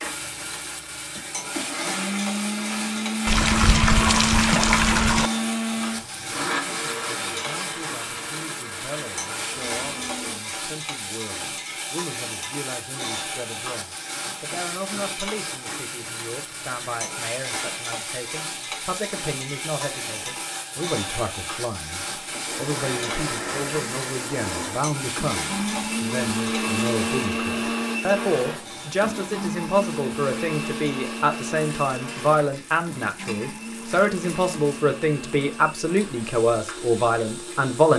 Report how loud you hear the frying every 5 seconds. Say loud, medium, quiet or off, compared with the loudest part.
loud, loud, loud, loud, loud, loud, medium, quiet.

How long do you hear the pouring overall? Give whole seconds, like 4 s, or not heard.
2 s.